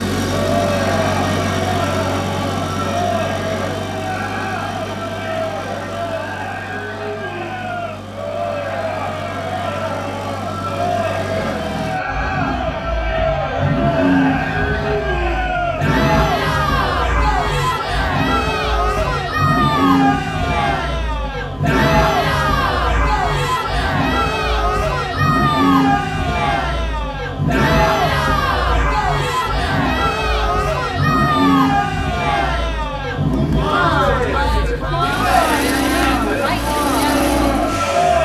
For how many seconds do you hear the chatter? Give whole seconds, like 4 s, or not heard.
38 s.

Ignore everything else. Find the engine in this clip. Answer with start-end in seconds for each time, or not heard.
0.0-38.2.